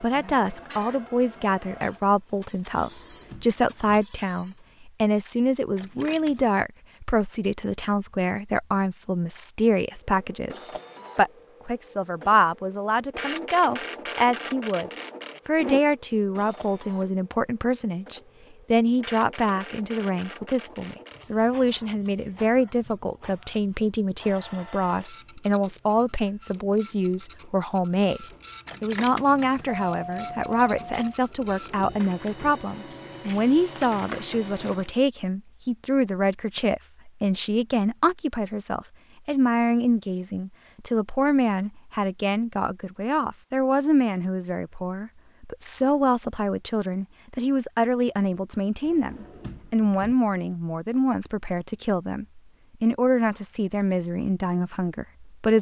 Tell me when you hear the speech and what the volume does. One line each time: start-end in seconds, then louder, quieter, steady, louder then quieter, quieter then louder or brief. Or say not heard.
0.0-55.5 steady.